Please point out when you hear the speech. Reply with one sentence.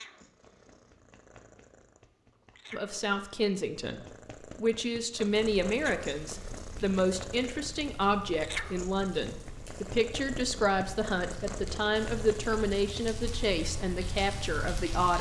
The speech can be heard from 2.7 to 15.1 s.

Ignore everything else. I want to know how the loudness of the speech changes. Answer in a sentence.
The volume of the speech stays about the same.